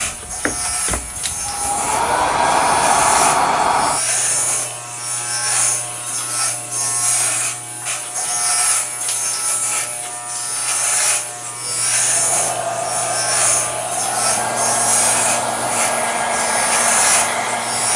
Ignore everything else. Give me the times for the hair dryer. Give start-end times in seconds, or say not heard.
0.0-4.8, 11.9-17.9.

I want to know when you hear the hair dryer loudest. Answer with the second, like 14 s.
3 s.